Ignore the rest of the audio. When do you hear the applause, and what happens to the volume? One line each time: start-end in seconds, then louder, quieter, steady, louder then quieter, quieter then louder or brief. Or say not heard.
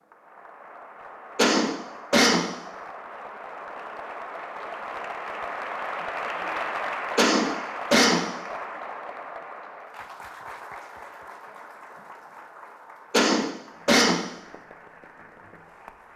0.0-16.1 louder then quieter.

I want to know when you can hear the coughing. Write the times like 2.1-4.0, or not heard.
1.4-2.5, 7.2-8.2, 13.1-14.2.